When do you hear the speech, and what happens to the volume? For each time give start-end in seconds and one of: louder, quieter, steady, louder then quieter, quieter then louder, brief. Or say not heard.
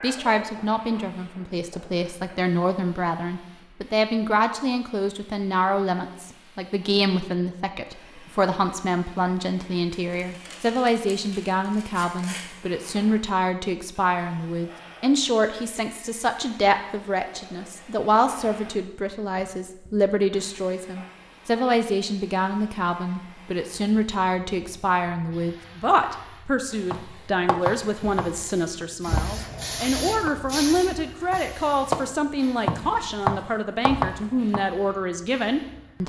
0.0-36.0 steady.